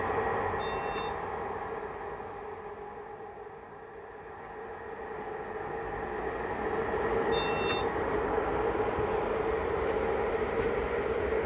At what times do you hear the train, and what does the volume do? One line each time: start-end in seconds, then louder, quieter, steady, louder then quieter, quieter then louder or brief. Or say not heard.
0.0-11.4 quieter then louder.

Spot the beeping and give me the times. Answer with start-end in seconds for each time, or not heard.
0.6-1.2, 7.3-7.9.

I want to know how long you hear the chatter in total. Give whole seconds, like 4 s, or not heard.
not heard.